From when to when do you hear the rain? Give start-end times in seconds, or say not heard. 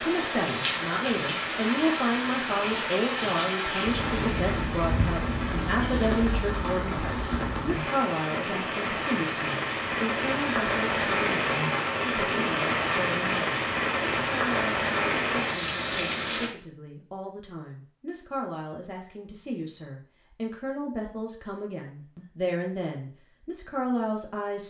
0.0-16.5.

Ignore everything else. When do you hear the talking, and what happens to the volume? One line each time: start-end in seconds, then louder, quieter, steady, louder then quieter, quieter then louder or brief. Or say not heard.
0.0-24.6 quieter then louder.